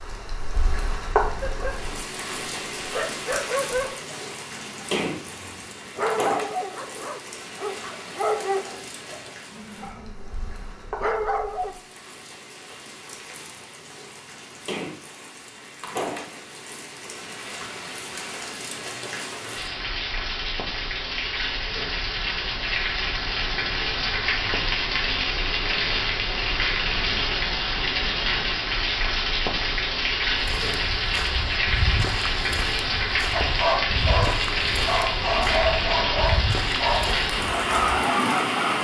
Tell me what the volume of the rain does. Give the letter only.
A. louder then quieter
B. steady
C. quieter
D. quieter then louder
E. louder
D.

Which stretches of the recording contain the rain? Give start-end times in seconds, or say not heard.
0.0-38.8.